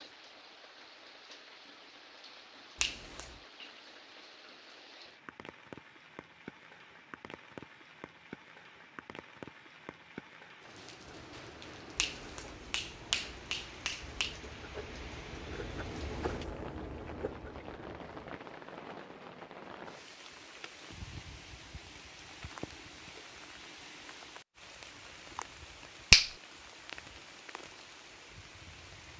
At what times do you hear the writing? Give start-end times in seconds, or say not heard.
10.9-18.4.